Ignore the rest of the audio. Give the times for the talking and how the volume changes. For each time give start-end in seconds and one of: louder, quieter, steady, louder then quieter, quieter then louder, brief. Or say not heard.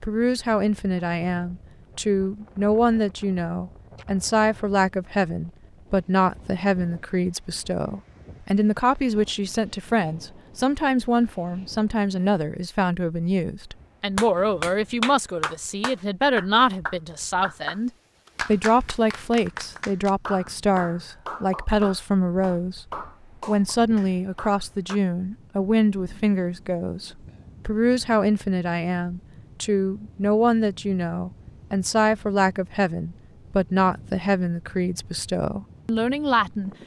0.0-22.9 steady
23.4-36.7 steady.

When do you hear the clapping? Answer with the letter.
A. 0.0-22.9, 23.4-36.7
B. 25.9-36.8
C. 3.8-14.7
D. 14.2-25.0
D.